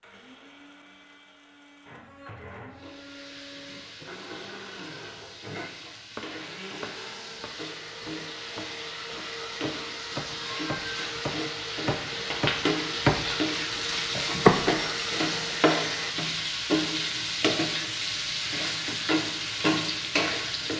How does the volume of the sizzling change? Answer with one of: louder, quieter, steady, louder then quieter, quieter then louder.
louder.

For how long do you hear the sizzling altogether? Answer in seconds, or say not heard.
18 s.